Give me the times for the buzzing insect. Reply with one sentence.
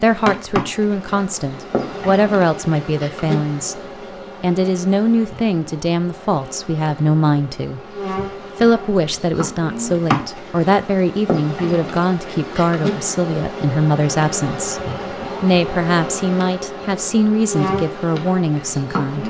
The buzzing insect can be heard from 0.0 to 19.2 s.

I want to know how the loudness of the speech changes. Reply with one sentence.
The volume of the speech stays about the same.